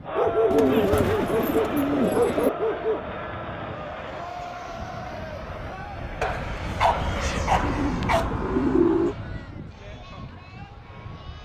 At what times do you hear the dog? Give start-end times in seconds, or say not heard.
0.1-3.0, 6.2-8.3.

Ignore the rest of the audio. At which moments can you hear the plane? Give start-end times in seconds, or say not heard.
0.0-11.4.